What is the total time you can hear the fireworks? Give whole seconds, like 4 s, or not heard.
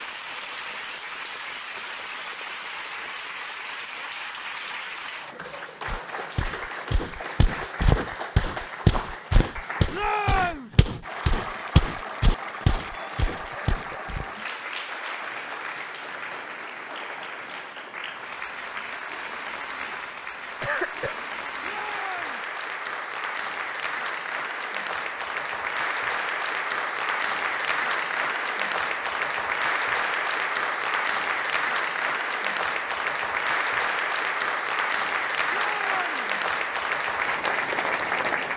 not heard.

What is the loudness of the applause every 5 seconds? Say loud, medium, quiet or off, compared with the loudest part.
medium, medium, medium, medium, medium, loud, loud, loud.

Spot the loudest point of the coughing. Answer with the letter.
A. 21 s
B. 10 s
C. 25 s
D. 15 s
A.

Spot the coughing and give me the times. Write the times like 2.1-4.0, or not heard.
13.5-13.9, 20.6-21.2.